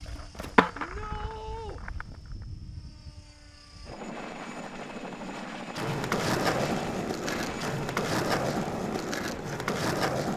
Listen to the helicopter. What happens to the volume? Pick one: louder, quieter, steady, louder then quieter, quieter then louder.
louder.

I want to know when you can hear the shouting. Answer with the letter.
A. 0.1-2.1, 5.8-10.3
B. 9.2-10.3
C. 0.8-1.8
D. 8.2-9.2
C.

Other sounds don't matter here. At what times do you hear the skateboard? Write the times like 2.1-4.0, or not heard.
0.1-2.1, 5.8-10.3.